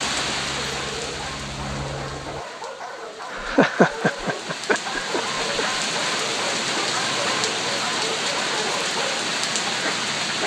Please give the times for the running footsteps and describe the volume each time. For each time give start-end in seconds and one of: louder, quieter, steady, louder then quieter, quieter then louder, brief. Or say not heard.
not heard.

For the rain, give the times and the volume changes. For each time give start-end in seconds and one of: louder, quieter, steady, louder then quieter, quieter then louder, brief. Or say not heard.
0.0-10.4 quieter then louder.